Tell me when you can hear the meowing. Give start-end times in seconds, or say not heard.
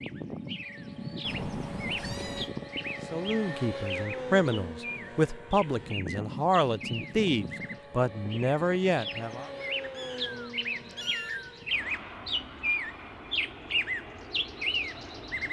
1.2-2.5, 9.9-11.6.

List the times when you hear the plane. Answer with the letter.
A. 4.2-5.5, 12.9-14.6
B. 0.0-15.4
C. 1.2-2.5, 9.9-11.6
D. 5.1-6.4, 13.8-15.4
B.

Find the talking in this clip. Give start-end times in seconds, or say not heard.
3.1-9.5.